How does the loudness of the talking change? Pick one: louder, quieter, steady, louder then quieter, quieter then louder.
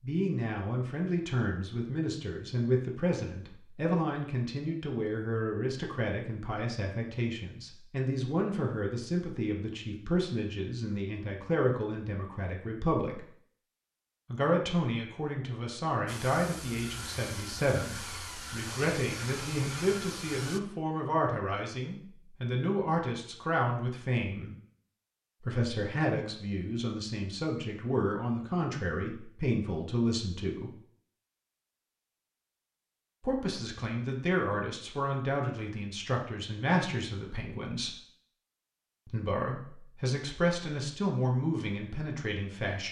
steady.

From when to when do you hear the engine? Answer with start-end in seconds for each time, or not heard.
16.1-20.6.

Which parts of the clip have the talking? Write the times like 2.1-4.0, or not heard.
0.0-13.2, 14.3-24.6, 25.4-30.7, 33.2-38.0, 39.0-42.8.